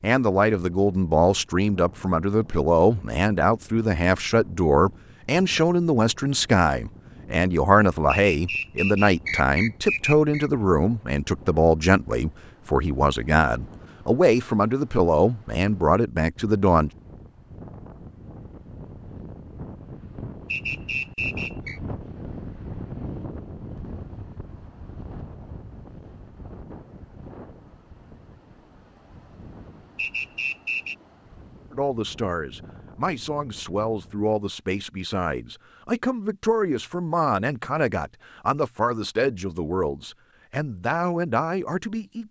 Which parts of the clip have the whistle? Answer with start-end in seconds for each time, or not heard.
8.1-10.5, 20.5-21.8, 29.9-30.9.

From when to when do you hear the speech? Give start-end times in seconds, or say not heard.
0.0-16.9, 31.7-42.2.